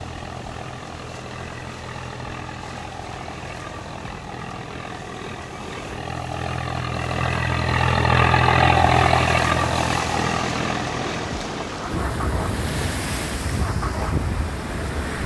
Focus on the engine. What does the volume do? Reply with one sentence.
The volume of the engine goes up, then down.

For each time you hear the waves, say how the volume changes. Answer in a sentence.
The waves can be heard from 0.0 to 15.2 s, getting louder.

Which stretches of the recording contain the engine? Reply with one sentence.
You can hear the engine from 0.0 to 15.2 s.